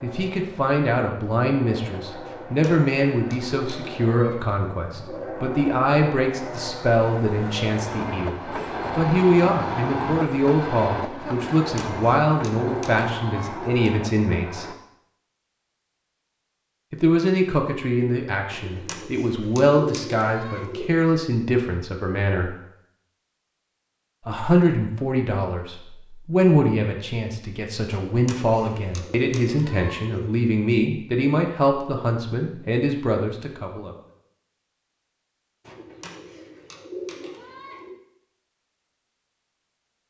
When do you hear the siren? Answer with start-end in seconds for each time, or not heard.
not heard.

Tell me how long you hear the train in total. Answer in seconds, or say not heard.
15 s.